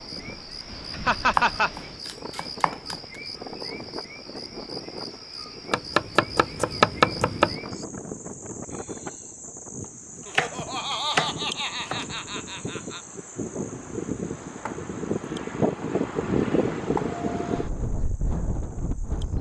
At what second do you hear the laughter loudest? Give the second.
1 s.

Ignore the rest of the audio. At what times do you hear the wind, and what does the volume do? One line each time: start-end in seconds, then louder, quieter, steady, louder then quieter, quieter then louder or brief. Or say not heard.
0.0-19.3 louder.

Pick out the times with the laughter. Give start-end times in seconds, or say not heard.
0.9-1.7, 10.2-13.0.